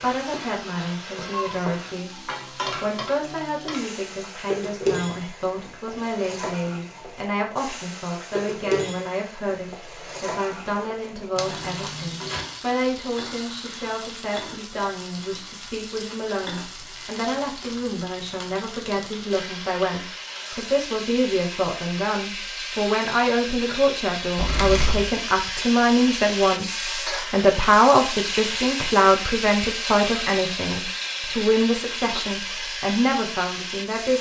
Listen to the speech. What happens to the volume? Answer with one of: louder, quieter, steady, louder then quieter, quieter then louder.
louder.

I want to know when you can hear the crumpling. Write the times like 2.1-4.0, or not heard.
11.3-12.4, 24.4-25.1.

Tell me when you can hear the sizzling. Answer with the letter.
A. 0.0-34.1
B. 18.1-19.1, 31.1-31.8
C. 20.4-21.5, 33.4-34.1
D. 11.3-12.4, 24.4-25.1
A.